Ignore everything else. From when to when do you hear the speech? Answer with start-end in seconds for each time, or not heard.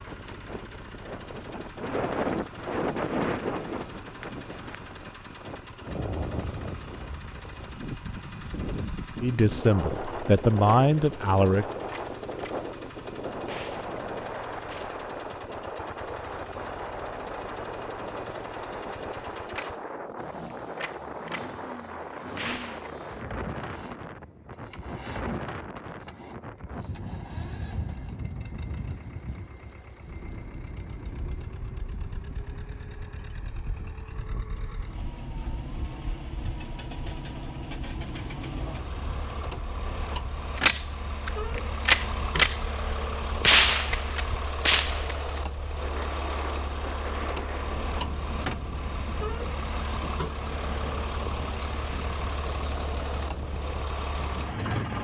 9.2-11.7.